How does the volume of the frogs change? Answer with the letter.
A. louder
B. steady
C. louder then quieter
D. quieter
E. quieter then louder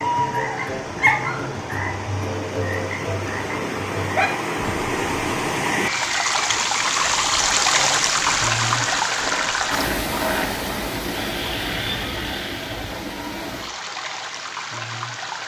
D.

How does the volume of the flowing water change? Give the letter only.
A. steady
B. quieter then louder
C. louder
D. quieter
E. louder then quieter
E.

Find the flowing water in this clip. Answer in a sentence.
The flowing water can be heard from 0.0 to 15.4 s.